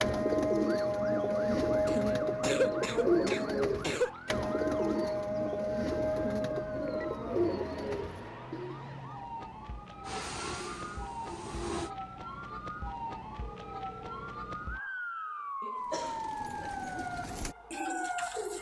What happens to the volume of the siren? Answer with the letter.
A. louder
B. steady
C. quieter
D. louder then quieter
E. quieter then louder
A.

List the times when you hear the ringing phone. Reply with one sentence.
You can hear the ringing phone from 13.4 to 14.4 s.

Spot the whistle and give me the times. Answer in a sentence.
You can't hear the whistle here.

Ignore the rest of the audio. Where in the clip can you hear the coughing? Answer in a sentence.
The coughing can be heard from 1.9 to 4.3 s and from 15.6 to 16.7 s.